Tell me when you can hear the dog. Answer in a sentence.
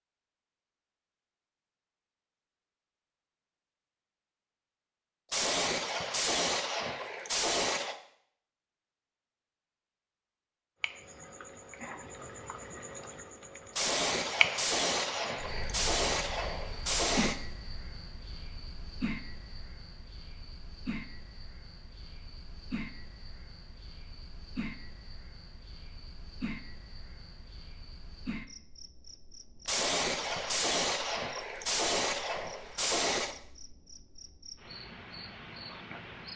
The dog can't be heard in this clip.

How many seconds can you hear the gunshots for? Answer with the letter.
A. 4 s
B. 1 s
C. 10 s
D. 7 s
C.